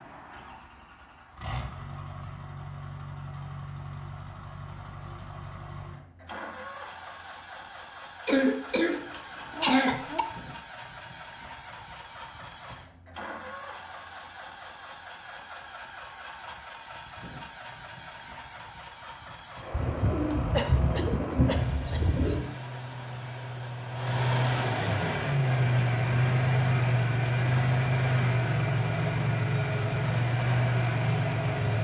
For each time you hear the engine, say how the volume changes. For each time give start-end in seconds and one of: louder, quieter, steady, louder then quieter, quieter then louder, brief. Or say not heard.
0.0-31.8 louder.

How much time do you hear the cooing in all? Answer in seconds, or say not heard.
3 s.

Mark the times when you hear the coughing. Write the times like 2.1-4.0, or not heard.
8.2-10.2, 20.5-22.0.